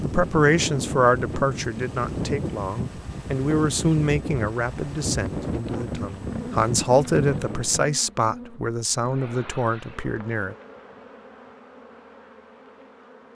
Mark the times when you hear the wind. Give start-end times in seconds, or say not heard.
0.0-7.9.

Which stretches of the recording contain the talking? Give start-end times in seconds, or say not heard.
0.0-10.6.